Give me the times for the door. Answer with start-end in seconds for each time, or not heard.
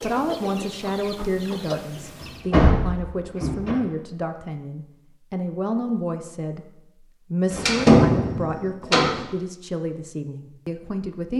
2.2-3.8, 7.5-9.2.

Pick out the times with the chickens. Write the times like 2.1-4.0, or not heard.
0.0-2.5.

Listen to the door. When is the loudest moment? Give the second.
8 s.